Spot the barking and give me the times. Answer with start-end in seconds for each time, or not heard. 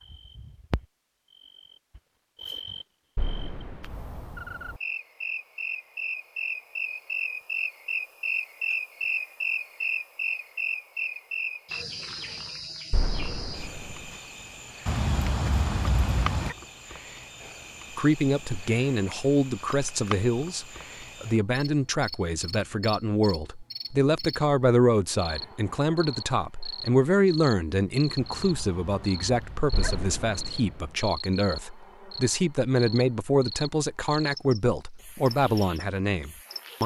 14.8-16.6, 28.1-30.1.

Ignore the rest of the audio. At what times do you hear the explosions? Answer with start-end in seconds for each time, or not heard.
3.1-4.3, 12.9-14.1, 29.7-30.9.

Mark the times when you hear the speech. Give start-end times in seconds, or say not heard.
17.9-36.8.